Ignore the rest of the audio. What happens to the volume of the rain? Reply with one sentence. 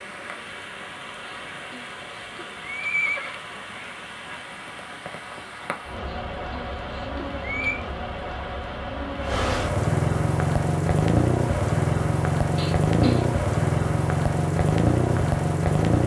The loudness of the rain goes up.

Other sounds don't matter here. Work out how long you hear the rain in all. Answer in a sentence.
The rain can be heard for 16 seconds in total.